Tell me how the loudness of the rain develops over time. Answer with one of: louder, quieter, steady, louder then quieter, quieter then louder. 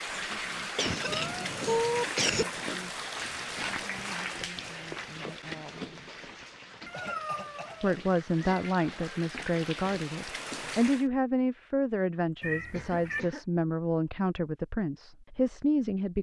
quieter then louder.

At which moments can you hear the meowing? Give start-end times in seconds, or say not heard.
1.1-2.0, 6.8-8.7, 12.4-13.2.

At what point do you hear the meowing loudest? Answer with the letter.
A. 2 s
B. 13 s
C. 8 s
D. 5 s
A.